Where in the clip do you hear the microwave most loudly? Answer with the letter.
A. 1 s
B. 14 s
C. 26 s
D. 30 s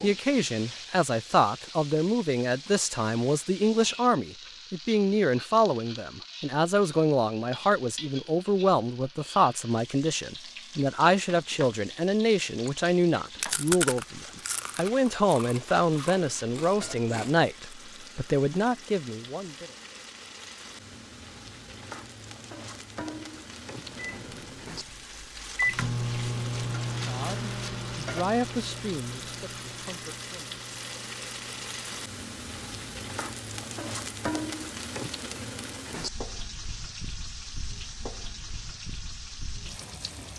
C.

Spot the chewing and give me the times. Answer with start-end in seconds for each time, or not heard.
11.9-17.3.